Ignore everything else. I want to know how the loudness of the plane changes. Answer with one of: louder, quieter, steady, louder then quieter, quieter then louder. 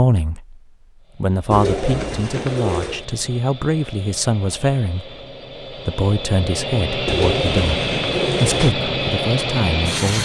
louder.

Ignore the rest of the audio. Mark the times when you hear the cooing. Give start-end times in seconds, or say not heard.
1.5-3.0, 7.0-8.8.